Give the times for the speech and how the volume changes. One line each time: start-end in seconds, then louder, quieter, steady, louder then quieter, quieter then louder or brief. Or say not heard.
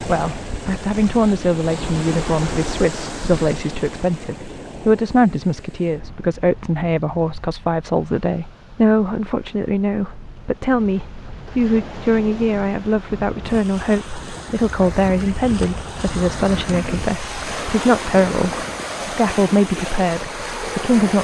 0.1-21.1 steady.